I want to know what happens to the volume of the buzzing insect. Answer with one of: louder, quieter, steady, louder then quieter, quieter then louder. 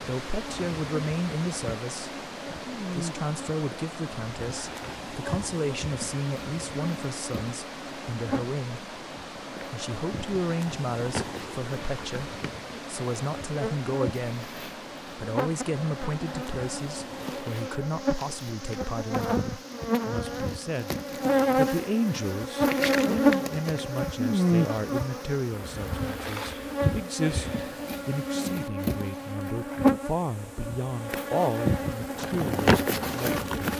louder.